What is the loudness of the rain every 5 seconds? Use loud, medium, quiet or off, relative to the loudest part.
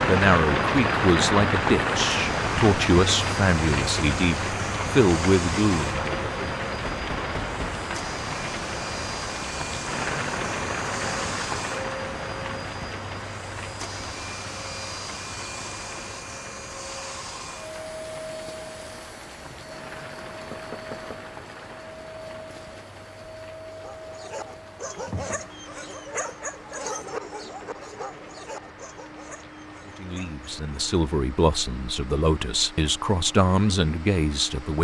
loud, medium, medium, quiet, quiet, quiet, quiet.